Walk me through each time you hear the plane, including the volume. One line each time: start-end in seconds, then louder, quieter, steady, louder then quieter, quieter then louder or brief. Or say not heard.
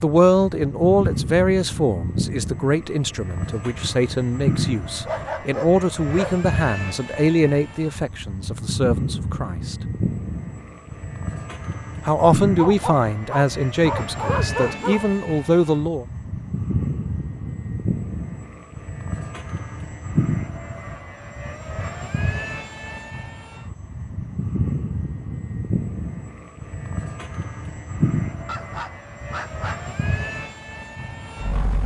0.0-31.8 steady.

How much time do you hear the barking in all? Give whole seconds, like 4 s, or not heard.
5 s.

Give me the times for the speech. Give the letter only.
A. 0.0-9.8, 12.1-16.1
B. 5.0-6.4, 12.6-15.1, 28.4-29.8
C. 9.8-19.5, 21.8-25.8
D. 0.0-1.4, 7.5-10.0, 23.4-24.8
A.